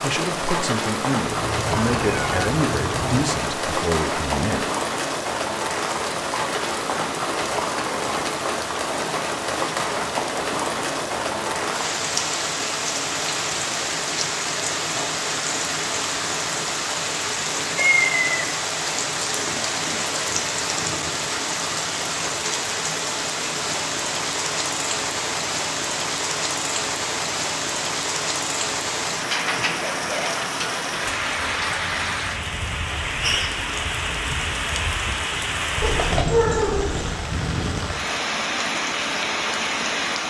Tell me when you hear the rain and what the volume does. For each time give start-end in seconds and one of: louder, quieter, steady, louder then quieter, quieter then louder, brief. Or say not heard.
0.0-40.2 steady.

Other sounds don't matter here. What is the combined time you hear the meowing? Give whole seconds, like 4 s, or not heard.
4 s.